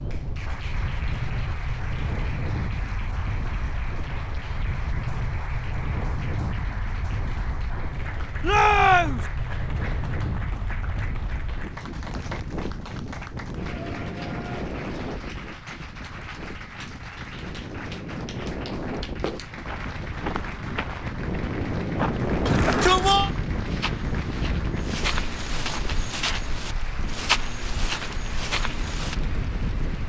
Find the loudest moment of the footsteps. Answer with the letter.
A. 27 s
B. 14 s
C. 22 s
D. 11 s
A.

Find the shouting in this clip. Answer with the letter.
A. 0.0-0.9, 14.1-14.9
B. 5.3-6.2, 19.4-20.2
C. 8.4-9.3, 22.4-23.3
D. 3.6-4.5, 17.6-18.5
C.